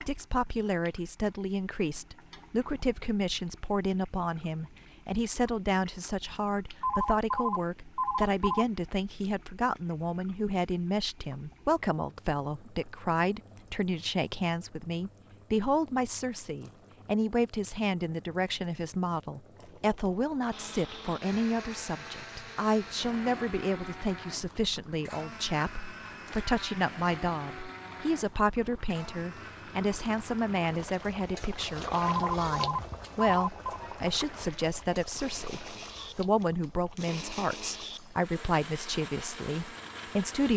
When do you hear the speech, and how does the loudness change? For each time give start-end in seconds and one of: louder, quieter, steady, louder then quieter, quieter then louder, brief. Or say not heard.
0.0-40.5 steady.